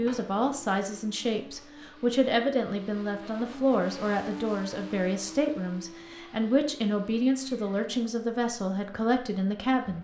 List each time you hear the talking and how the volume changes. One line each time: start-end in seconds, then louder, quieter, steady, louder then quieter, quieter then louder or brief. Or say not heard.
0.0-10.0 steady.